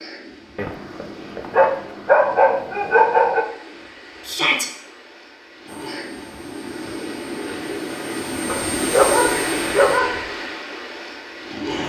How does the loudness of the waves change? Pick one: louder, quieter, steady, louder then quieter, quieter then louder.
louder.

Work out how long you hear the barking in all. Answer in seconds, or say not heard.
5 s.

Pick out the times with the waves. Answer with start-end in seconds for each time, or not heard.
0.0-11.8.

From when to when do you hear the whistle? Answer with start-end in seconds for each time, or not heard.
not heard.